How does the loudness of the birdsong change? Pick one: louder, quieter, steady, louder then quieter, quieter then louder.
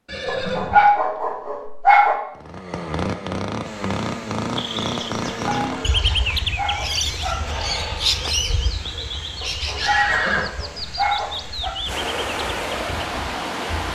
quieter.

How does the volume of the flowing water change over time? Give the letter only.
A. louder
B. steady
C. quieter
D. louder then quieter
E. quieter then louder
A.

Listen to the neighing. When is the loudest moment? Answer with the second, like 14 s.
10 s.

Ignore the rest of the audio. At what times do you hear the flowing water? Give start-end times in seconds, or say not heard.
3.6-13.8.